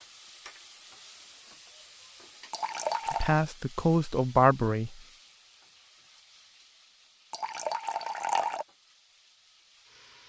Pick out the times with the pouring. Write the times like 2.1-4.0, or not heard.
2.5-3.4, 7.3-8.7.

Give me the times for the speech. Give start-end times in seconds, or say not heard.
3.1-5.0.